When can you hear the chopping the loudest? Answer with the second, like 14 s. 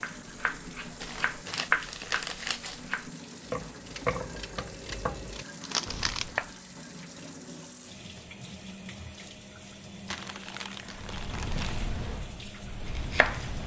2 s.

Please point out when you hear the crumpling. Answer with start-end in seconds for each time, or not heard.
1.0-2.8, 5.6-6.2, 10.1-11.8.